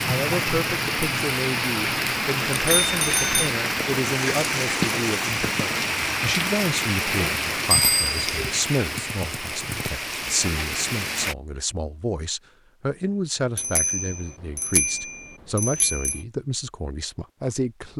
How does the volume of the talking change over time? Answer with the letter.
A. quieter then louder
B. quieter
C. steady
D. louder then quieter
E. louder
C.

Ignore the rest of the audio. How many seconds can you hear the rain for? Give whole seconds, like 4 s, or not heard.
11 s.